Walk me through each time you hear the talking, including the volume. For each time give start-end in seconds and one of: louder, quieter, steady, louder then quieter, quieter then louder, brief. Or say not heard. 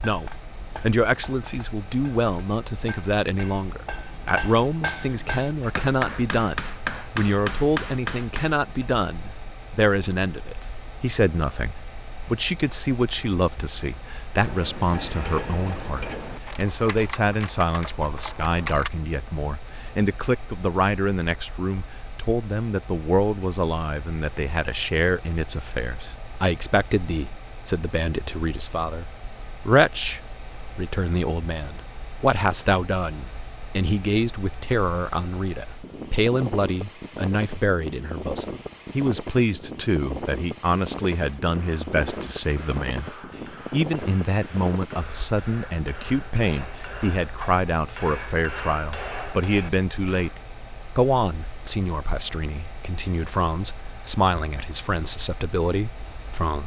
0.0-29.1 steady
29.6-56.6 steady.